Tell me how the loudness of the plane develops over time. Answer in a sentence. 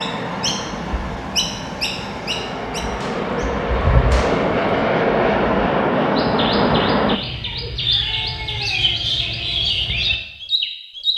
The volume of the plane goes up.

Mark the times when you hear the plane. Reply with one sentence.
You can hear the plane from 0.0 to 7.2 s.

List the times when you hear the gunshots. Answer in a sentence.
You can hear the gunshots from 2.8 to 4.8 s.